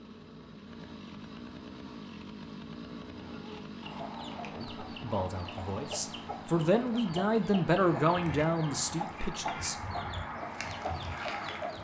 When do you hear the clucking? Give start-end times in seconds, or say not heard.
3.2-11.8.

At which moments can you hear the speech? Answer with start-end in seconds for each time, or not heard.
4.4-9.8.